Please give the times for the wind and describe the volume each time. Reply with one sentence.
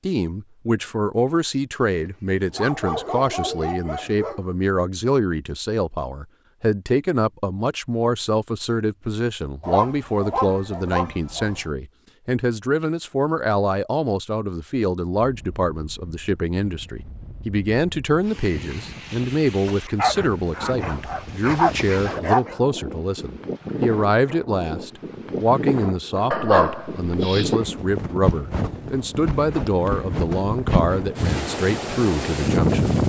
You can hear the wind from 15.2 to 33.0 s, getting louder.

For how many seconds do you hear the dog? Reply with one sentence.
You can hear the dog for 9 seconds altogether.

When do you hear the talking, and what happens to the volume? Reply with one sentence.
You can hear the talking from 0.1 to 33.0 s, at a steady volume.